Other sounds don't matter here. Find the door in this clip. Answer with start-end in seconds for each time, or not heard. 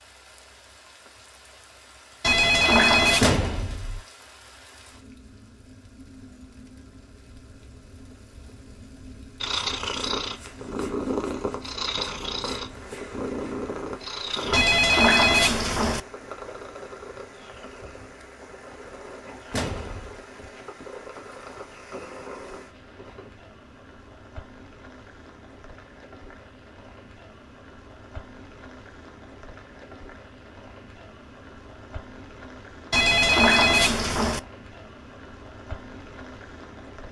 3.2-4.0, 19.5-20.1.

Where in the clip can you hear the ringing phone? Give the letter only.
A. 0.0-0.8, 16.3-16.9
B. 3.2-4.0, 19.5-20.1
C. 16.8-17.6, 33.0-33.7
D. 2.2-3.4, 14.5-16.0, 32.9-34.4
D.